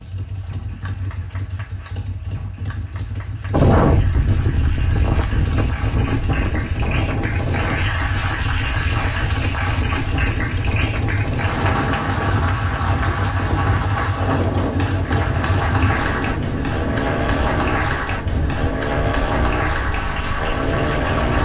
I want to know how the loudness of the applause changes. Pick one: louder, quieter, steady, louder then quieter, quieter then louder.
louder.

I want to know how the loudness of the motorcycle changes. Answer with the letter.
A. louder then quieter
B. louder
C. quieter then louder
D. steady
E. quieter
B.